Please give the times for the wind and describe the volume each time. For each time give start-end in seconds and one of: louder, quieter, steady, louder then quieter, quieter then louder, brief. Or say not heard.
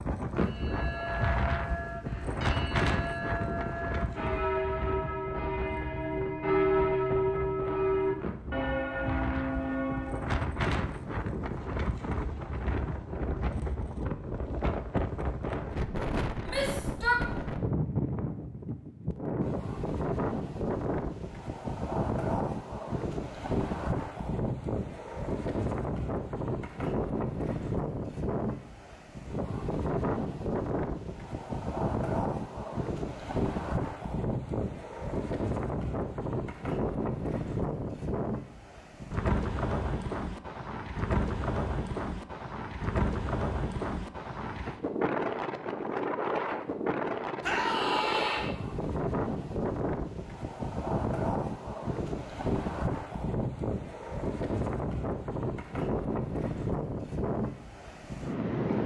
0.0-58.8 steady.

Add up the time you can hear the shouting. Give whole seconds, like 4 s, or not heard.
2 s.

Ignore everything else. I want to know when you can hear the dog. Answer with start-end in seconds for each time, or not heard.
not heard.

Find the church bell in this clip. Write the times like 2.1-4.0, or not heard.
0.3-10.4.